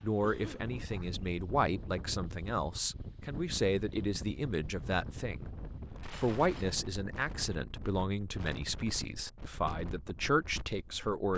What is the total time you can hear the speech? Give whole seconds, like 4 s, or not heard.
11 s.